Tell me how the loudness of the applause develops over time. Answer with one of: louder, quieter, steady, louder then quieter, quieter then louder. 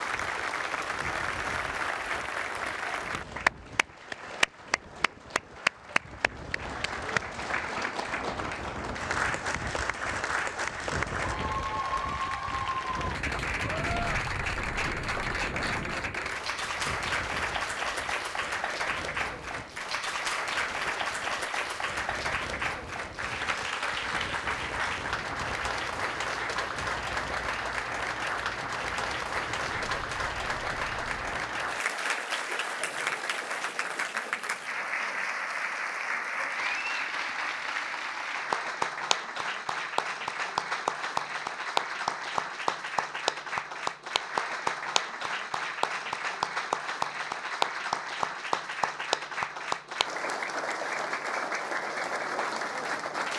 steady.